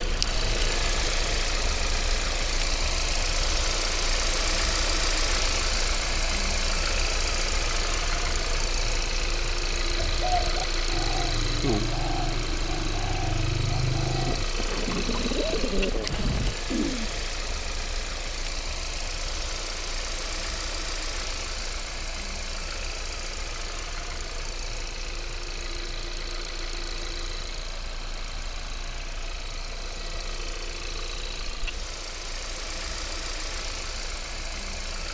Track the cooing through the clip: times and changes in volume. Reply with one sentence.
The cooing can be heard from 9.9 to 17.1 s, at a steady volume.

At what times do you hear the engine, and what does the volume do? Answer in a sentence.
You can hear the engine from 0.0 to 35.0 s, getting quieter.